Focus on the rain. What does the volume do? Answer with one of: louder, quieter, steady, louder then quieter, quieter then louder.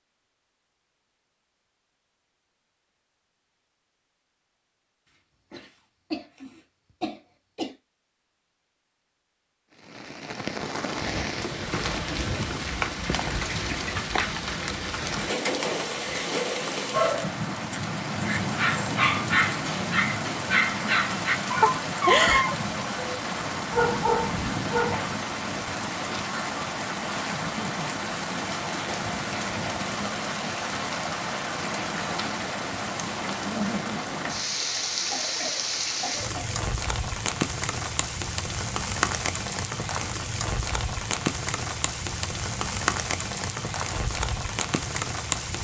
steady.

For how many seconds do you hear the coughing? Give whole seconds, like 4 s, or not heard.
5 s.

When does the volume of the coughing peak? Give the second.
22 s.